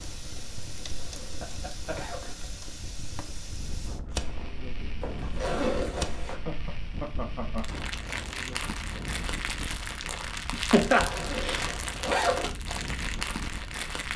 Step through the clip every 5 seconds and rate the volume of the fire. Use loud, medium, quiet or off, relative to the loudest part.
medium, loud, loud.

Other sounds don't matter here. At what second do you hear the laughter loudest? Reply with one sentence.
The volume of the laughter peaks at 11 seconds.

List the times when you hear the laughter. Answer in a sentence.
The laughter can be heard from 1.4 to 2.4 s, from 6.3 to 7.7 s and from 10.5 to 11.7 s.